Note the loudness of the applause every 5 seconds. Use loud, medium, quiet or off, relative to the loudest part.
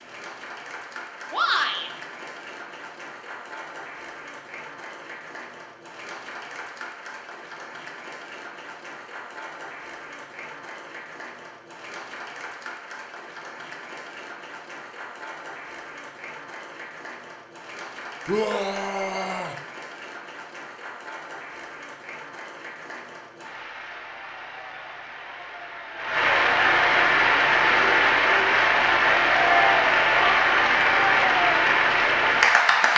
quiet, quiet, quiet, quiet, quiet, loud, loud.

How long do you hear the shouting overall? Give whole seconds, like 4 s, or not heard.
2 s.